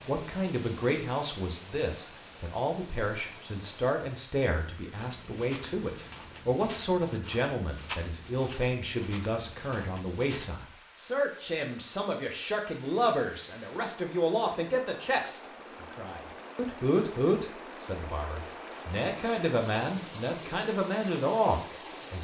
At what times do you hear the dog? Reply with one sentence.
You can't hear the dog here.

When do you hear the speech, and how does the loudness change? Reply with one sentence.
The speech can be heard from 0.1 to 22.1 s, at a steady volume.